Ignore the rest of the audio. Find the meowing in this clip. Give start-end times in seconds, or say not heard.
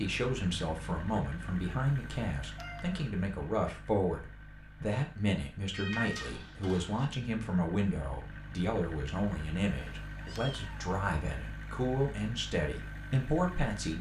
2.5-3.0, 5.7-7.0, 10.0-10.9.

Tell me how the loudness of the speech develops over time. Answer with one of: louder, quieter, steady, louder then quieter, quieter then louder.
steady.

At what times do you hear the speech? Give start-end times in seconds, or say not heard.
0.0-13.9.